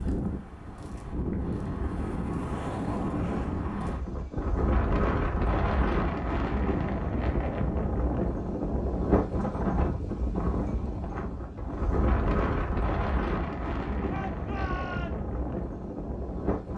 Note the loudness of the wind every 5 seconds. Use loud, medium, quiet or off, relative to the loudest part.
loud, loud, loud, medium.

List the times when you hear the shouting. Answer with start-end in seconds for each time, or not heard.
14.1-15.2.